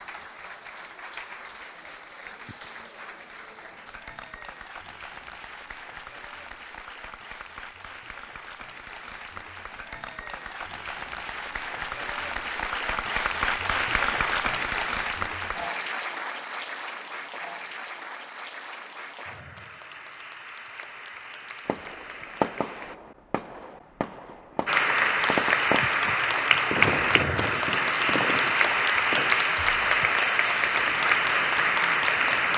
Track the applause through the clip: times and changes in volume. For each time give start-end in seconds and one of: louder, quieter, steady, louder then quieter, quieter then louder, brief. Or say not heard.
0.0-22.9 louder then quieter
24.6-32.5 steady.